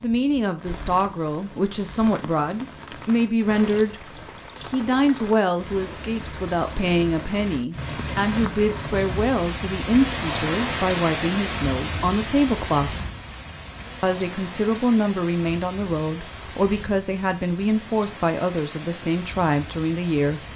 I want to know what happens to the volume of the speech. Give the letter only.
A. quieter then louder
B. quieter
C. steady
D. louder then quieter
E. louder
C.